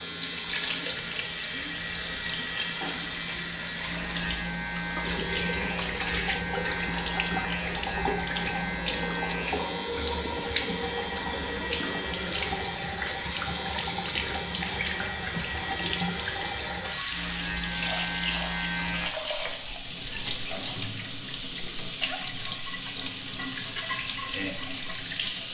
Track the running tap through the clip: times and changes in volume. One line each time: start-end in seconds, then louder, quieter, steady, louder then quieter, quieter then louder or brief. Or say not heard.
0.0-25.4 steady.